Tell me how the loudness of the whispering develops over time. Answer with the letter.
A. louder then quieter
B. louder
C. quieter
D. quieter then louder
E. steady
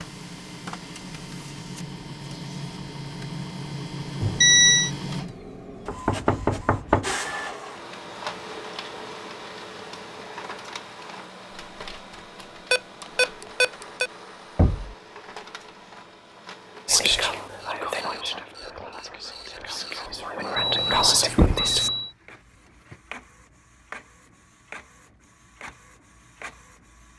D.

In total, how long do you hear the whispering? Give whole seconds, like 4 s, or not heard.
5 s.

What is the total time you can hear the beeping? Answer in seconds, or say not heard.
4 s.